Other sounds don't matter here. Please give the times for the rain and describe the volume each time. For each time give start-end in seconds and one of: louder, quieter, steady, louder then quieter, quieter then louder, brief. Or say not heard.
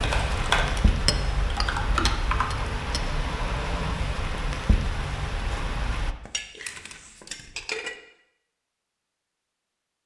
0.0-6.2 steady.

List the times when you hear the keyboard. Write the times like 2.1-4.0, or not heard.
0.0-2.5.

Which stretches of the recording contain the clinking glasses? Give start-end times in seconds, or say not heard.
1.1-3.0, 6.2-8.0.